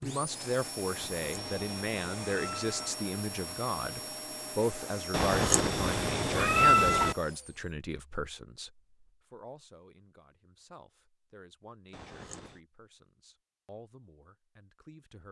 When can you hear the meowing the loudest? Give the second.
7 s.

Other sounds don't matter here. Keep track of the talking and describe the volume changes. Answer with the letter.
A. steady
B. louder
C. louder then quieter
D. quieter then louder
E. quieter
E.